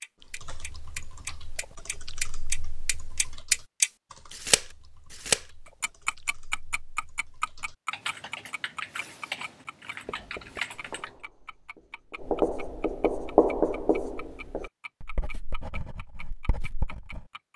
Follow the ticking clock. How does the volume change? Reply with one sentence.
The loudness of the ticking clock goes down.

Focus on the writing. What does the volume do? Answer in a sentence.
The loudness of the writing goes up, then down.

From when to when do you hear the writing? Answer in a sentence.
You can hear the writing from 10.0 to 17.2 s.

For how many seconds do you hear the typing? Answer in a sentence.
You can hear the typing for 11 seconds altogether.